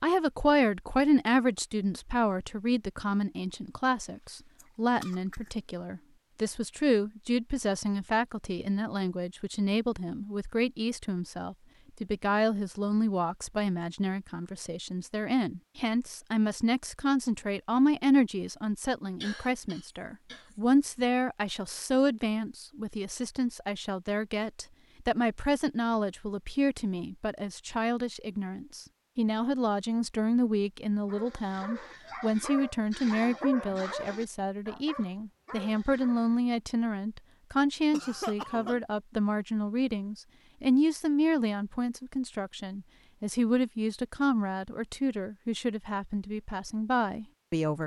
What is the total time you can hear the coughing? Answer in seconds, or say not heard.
4 s.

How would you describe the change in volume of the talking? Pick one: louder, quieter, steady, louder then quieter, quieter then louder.
steady.